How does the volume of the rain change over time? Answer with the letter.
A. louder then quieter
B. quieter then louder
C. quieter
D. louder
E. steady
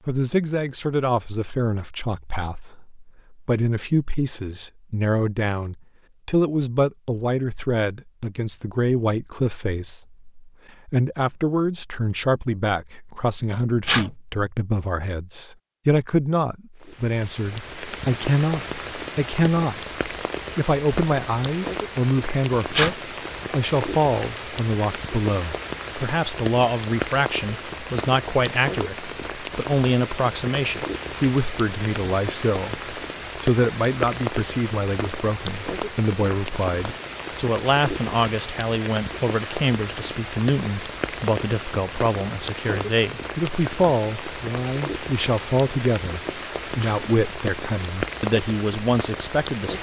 E.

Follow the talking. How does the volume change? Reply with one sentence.
The volume of the talking stays about the same.